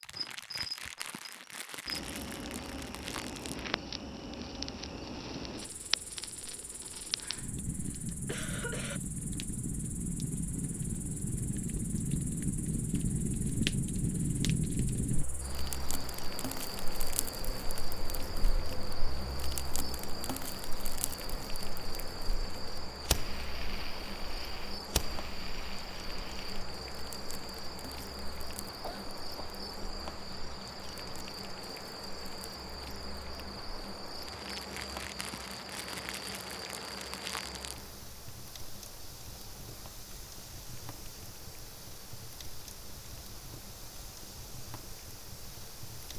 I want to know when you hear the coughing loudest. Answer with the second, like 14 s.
9 s.